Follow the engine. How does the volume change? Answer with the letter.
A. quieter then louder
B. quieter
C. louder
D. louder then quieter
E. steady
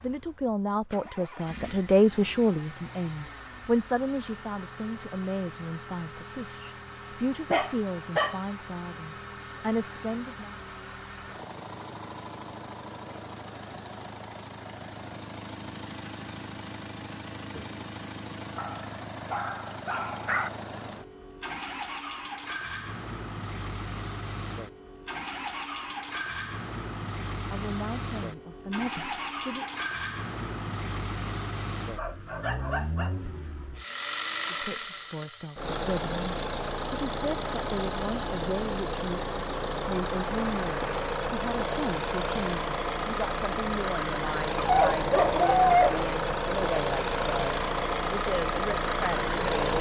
C.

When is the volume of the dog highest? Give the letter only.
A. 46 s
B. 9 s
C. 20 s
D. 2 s
A.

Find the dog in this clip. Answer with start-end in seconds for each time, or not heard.
7.5-8.3, 18.6-20.5, 31.9-33.1, 44.5-46.0.